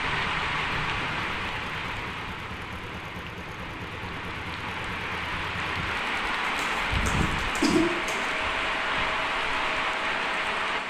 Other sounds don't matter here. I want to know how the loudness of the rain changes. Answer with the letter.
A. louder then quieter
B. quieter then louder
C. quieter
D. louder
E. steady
B.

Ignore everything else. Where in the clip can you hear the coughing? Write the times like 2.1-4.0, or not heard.
6.5-8.2.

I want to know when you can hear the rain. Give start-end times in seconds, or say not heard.
0.0-10.8.